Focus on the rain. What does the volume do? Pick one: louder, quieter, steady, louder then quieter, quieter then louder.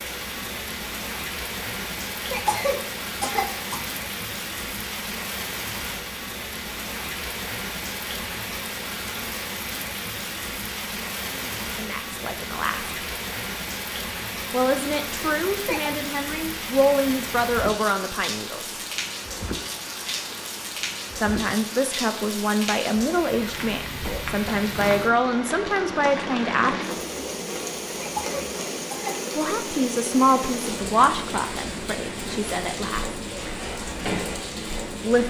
steady.